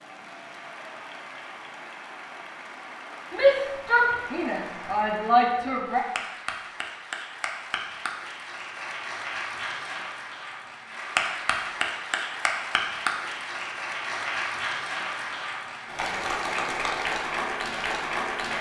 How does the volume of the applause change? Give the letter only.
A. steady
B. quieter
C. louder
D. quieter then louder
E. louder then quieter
C.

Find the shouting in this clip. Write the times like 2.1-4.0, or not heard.
3.3-6.0.